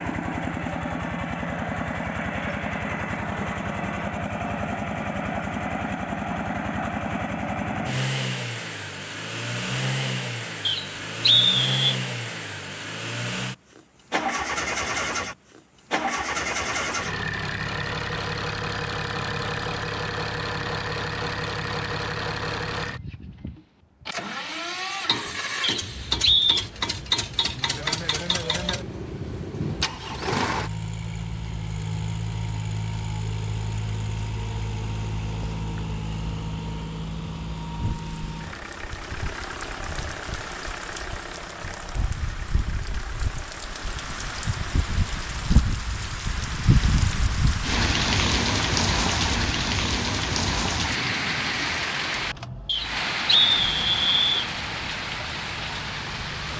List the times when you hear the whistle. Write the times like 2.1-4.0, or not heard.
10.7-11.9, 25.6-26.6, 52.6-54.4.